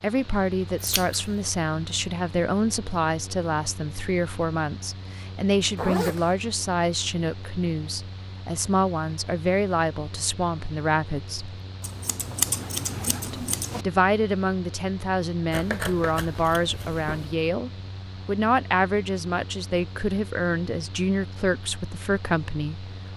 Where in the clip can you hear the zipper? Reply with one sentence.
The zipper can be heard from 5.8 to 6.3 s and from 12.6 to 13.3 s.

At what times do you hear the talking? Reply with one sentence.
You can hear the talking from 0.0 to 11.6 s and from 13.2 to 23.1 s.